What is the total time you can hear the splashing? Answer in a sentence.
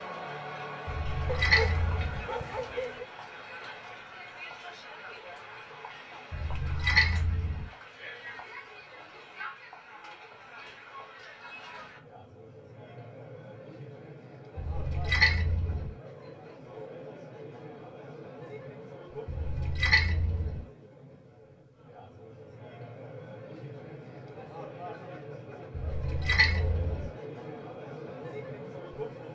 You can hear the splashing for 7 seconds altogether.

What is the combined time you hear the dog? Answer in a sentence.
The dog can be heard for 2 seconds in total.